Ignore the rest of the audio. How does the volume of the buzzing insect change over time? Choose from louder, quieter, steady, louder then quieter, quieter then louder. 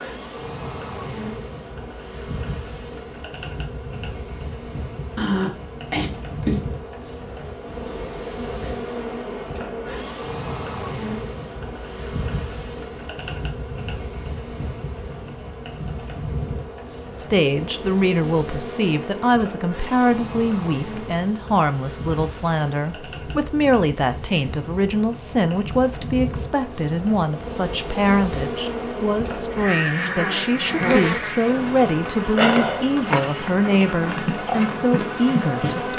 louder.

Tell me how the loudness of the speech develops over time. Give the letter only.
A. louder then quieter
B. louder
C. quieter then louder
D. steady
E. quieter
D.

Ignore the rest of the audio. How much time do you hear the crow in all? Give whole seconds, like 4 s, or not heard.
not heard.